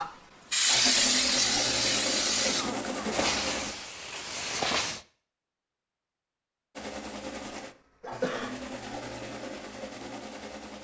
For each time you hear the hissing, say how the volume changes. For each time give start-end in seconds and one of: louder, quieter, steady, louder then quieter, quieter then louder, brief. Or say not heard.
0.0-5.0 quieter.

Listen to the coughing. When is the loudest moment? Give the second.
8 s.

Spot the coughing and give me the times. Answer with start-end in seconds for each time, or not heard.
2.5-3.3, 8.0-8.6.